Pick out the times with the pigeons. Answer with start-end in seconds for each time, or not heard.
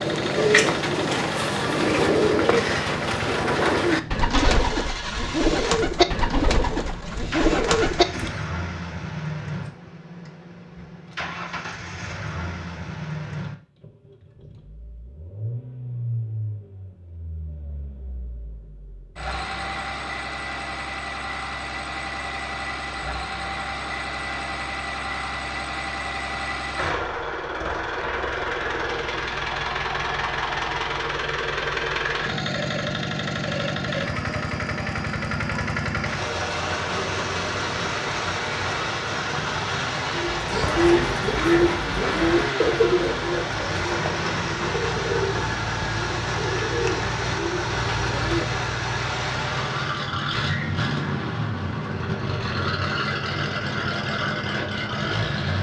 0.0-8.4, 40.1-48.6.